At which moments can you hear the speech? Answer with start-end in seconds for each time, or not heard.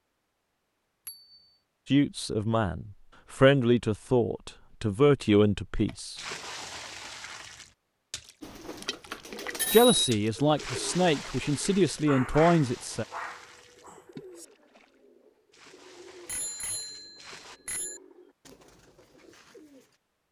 1.9-6.2, 9.7-13.1.